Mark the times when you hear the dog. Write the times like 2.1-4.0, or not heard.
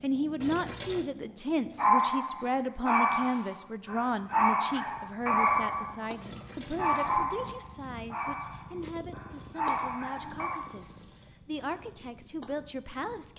1.8-10.6.